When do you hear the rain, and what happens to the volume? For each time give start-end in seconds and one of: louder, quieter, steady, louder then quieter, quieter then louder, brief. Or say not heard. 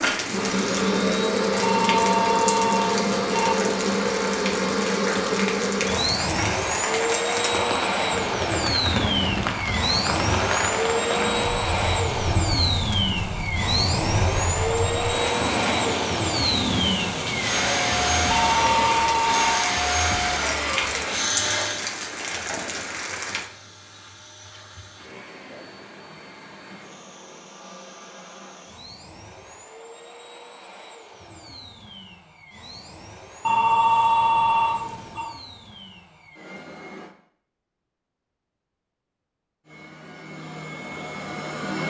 0.0-23.5 steady.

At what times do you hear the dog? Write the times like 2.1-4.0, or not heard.
not heard.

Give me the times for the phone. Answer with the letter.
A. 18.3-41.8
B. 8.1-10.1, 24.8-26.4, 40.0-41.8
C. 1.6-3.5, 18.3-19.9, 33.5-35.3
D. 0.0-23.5
C.